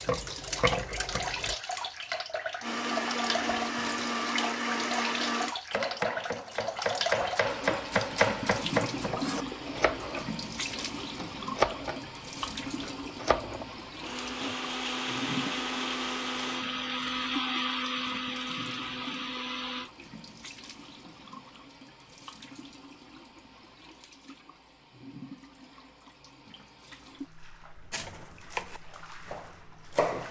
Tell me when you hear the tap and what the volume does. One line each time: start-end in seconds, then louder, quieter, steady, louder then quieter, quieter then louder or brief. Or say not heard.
0.0-30.2 quieter.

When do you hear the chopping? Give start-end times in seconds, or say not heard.
0.0-1.6, 5.7-14.6, 27.9-30.2.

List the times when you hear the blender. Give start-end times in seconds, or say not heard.
2.6-5.5, 14.0-19.9.